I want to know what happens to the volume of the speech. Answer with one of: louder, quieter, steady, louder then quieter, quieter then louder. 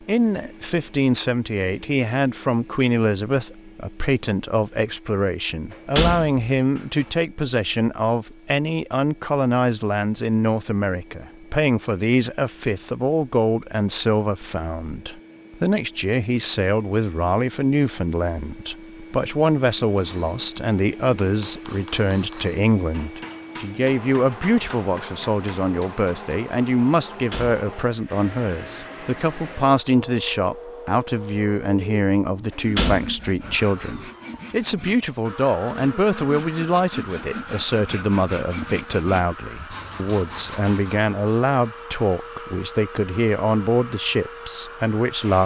steady.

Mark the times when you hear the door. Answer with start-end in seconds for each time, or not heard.
5.7-7.0, 27.1-27.6, 32.5-33.9.